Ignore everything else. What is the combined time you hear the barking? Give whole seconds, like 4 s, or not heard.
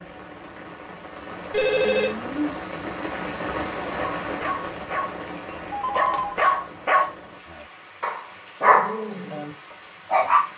5 s.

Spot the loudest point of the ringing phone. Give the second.
2 s.